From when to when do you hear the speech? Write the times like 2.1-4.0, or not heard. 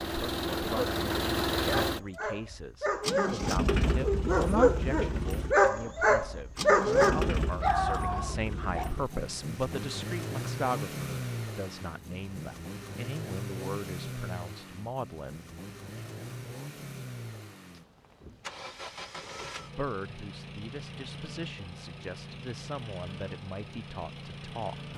0.0-15.4, 19.8-24.9.